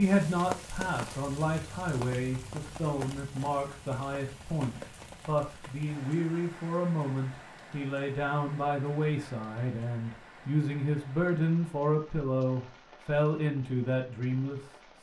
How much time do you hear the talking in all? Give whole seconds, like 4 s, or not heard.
15 s.